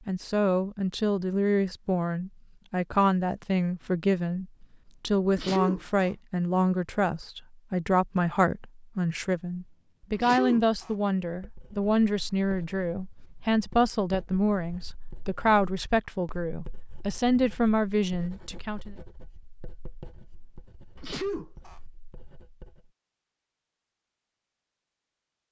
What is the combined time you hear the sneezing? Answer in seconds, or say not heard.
4 s.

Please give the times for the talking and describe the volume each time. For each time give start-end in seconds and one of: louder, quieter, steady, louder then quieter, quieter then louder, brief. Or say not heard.
0.1-18.9 steady.